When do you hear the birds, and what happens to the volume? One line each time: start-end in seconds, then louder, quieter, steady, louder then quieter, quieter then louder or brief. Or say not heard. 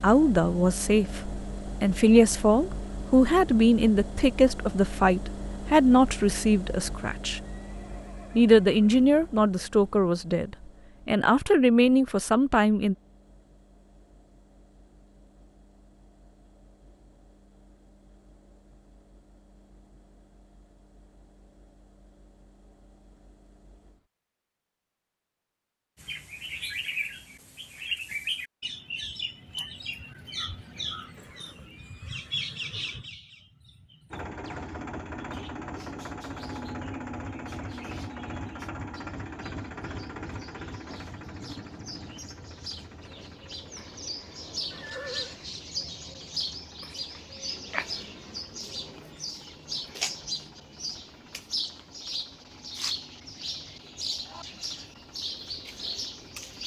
25.9-56.6 quieter then louder.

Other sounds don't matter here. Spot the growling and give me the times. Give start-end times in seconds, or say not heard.
not heard.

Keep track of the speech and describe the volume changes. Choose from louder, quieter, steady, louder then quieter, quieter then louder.
steady.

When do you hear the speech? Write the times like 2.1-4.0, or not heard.
0.0-7.4, 8.3-12.9.